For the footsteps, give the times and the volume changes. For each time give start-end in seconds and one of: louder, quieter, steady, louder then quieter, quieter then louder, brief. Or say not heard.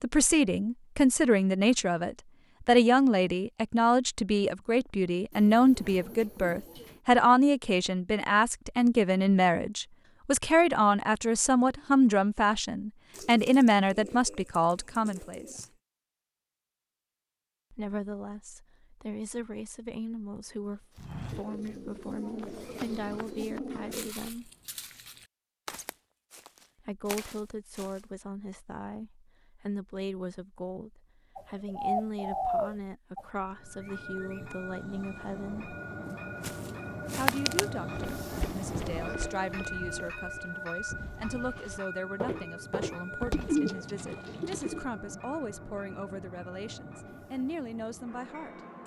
20.9-28.1 louder
36.4-43.5 quieter then louder.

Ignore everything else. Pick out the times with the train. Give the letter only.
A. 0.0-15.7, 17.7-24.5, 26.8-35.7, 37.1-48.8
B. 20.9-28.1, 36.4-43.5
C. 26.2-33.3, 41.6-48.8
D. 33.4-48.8
D.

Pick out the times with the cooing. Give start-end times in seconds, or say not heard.
5.3-7.0, 13.1-15.7, 21.3-24.1, 31.4-33.2, 43.3-44.9.